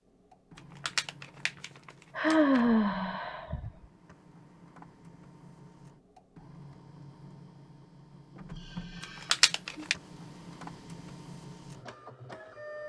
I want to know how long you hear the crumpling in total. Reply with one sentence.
The crumpling can be heard for 3 seconds in total.